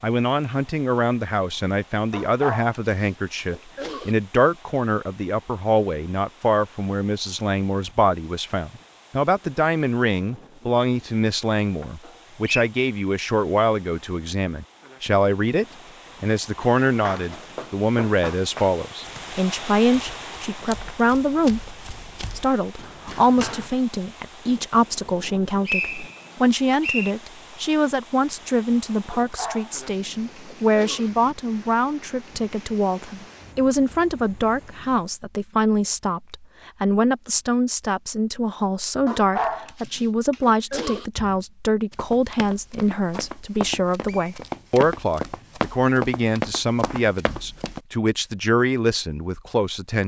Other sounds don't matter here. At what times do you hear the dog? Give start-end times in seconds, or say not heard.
2.1-4.2, 29.1-31.1, 39.0-41.0.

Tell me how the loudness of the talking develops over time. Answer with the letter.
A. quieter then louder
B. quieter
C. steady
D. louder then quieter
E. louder
C.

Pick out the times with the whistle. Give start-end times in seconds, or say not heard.
12.1-12.7, 25.6-27.1, 44.0-44.5.